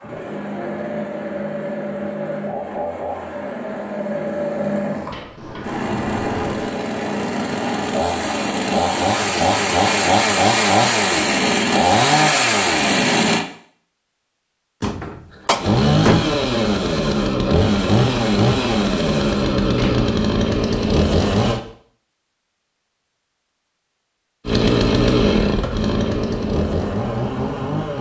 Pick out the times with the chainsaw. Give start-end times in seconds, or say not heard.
0.0-13.4, 15.6-21.6, 24.4-27.9.